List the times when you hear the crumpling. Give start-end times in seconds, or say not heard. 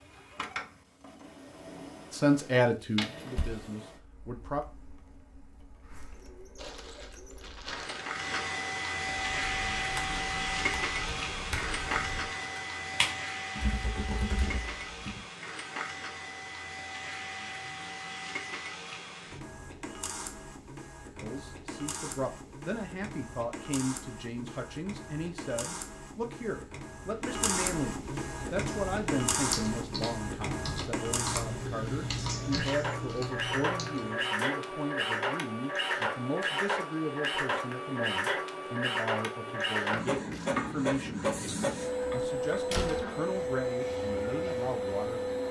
6.5-8.4, 39.9-40.5.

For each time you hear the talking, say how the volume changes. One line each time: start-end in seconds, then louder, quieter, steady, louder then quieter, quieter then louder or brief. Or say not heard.
2.1-4.7 brief
21.2-45.2 steady.